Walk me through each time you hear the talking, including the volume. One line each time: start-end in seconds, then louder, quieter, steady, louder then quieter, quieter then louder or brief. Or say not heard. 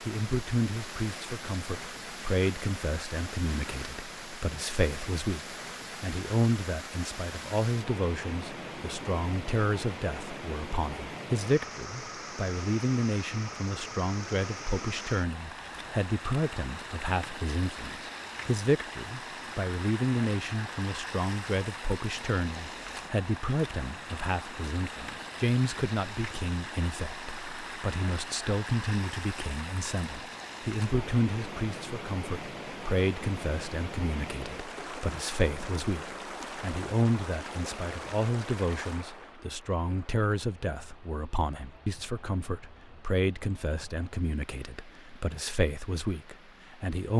0.0-47.1 steady.